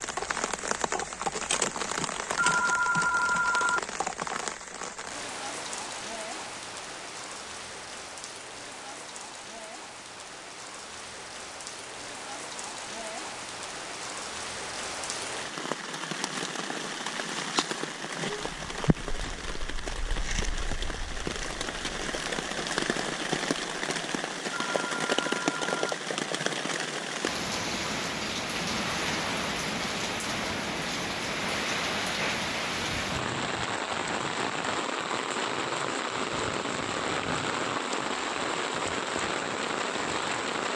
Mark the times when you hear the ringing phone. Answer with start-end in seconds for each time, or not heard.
2.4-3.8, 24.5-25.9.